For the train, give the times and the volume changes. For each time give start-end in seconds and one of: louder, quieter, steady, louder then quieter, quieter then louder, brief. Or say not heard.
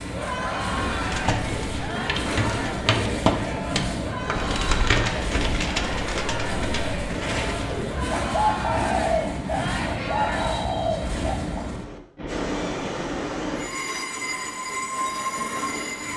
0.0-16.1 steady.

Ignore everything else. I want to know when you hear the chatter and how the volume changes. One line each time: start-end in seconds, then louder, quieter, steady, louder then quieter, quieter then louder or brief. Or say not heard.
0.0-10.6 steady.